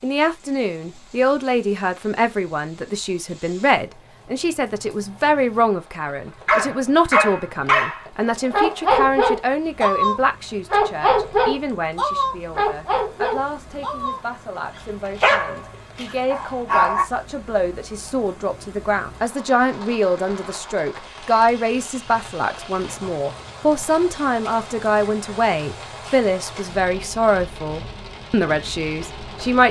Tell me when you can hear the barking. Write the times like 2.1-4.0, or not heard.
6.5-17.1.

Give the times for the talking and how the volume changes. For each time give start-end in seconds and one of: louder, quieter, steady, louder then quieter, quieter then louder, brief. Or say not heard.
0.0-29.6 quieter then louder.